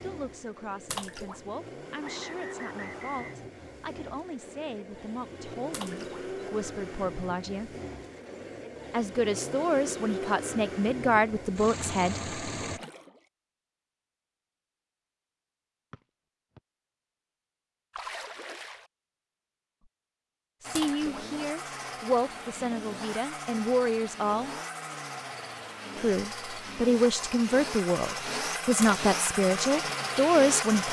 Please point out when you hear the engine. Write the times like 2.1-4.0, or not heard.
0.0-12.8, 20.6-30.8.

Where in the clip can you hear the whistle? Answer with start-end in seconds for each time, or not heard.
2.0-3.4, 15.9-16.6.